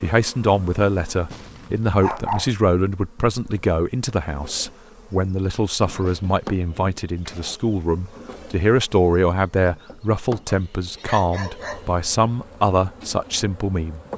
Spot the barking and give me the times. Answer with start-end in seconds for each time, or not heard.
1.3-2.5, 5.8-7.5, 10.4-11.9.